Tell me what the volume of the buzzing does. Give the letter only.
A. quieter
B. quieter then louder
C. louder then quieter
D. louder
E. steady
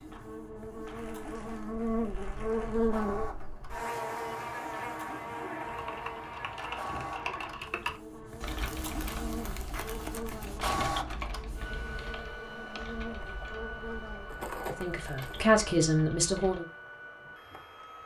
A.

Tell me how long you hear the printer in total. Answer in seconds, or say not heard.
18 s.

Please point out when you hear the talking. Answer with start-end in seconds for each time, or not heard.
14.7-16.6.